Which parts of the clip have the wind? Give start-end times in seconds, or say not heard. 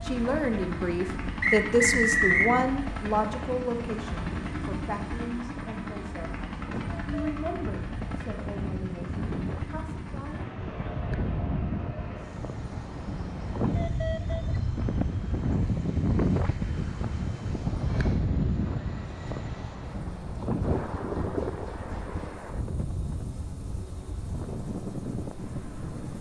0.0-26.1.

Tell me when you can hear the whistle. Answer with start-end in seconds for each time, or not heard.
1.4-2.5.